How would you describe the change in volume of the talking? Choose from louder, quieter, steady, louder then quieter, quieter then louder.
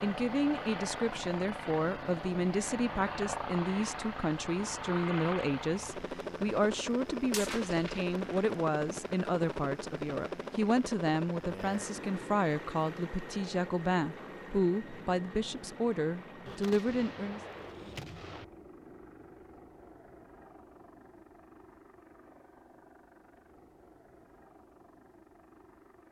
steady.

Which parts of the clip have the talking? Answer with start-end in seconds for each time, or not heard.
0.0-17.4.